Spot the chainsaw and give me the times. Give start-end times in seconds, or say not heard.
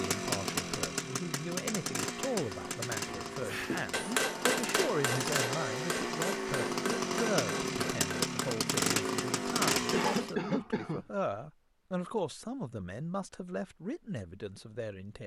0.0-10.3.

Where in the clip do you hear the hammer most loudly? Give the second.
4 s.